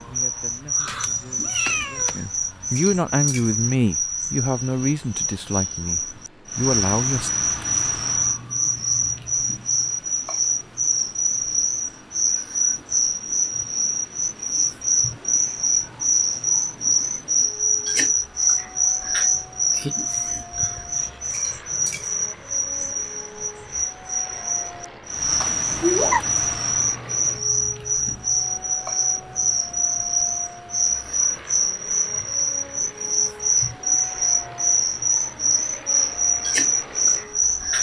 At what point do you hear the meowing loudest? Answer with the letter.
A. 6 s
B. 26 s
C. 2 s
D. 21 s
B.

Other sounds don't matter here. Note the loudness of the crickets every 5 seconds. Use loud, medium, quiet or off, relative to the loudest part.
medium, loud, loud, loud, medium, loud, loud, loud.